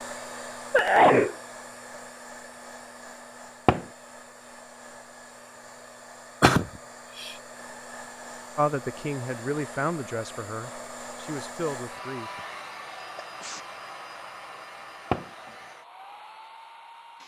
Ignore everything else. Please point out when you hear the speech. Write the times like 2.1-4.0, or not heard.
8.6-12.3.